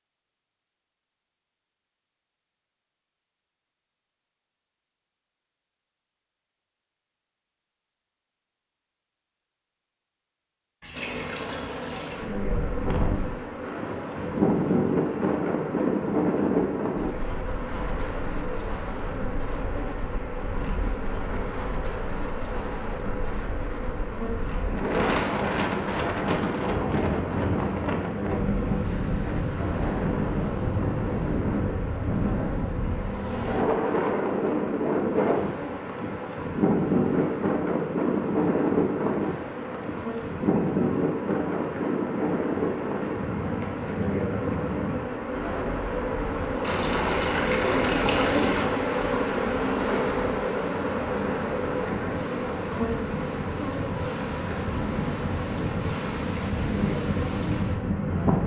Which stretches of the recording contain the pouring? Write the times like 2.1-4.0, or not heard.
10.8-12.3, 46.6-48.6.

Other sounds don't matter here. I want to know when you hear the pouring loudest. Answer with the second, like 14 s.
48 s.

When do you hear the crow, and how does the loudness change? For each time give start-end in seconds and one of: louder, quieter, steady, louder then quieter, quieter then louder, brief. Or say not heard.
not heard.